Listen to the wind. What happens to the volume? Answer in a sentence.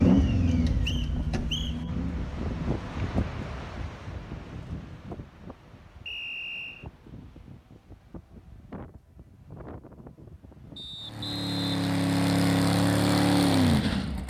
The loudness of the wind goes down.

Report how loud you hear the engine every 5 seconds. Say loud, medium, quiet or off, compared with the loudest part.
loud, off, loud.